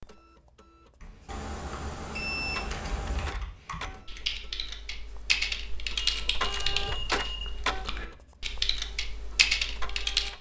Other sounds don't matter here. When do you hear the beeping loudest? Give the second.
2 s.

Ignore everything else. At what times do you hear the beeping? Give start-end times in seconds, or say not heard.
1.2-3.3, 6.0-7.5.